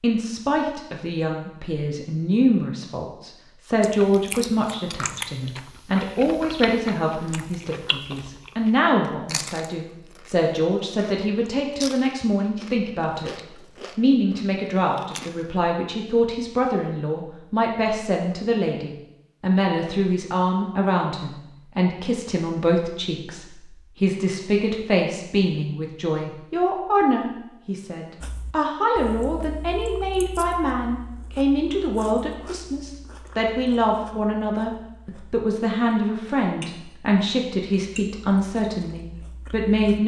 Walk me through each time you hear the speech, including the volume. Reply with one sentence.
You can hear the speech from 0.0 to 40.0 s, at a steady volume.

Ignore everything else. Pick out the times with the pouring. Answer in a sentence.
You can't hear the pouring here.